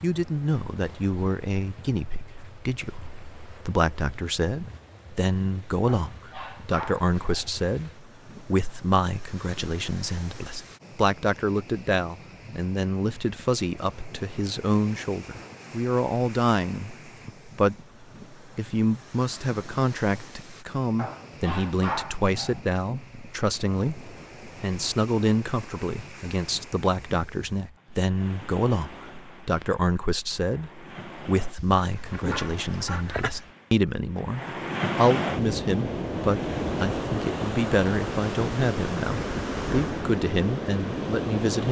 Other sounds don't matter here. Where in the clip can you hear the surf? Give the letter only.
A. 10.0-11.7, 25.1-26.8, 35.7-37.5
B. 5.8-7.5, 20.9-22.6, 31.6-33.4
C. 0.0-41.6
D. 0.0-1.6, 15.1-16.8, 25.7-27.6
C.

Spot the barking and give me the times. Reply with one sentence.
The barking can be heard from 5.8 to 7.5 s, from 20.9 to 22.6 s and from 31.6 to 33.4 s.